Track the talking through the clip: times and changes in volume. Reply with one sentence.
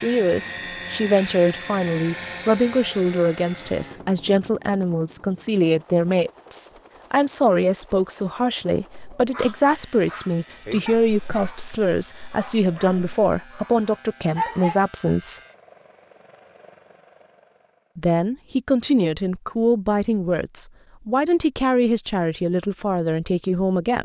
The talking can be heard from 0.0 to 15.4 s, at a steady volume; and from 17.9 to 24.0 s, at a steady volume.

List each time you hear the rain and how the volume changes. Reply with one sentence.
You can't hear the rain here.